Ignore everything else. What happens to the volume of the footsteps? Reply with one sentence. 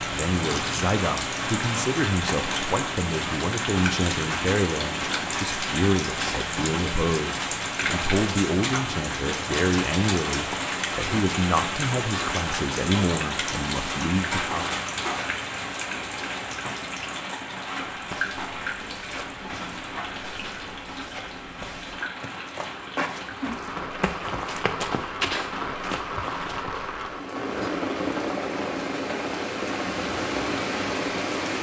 The volume of the footsteps goes up.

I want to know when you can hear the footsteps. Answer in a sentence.
You can hear the footsteps from 17.9 to 26.8 s.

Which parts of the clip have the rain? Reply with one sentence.
You can hear the rain from 0.0 to 31.5 s.